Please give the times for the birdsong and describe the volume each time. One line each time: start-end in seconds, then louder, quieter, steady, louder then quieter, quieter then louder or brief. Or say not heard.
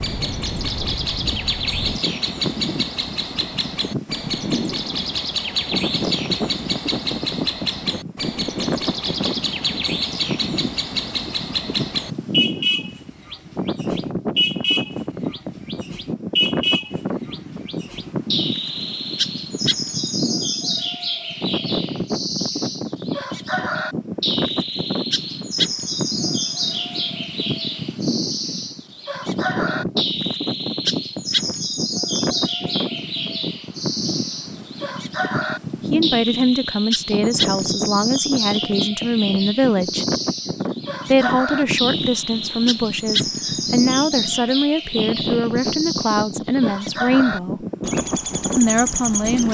0.0-49.4 steady.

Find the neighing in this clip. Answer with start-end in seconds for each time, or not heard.
not heard.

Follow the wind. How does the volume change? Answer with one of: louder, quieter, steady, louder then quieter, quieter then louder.
steady.